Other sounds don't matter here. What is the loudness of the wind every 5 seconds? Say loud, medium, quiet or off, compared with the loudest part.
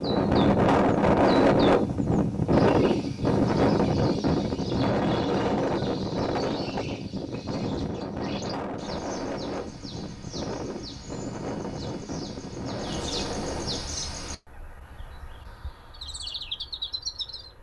loud, medium, quiet, off.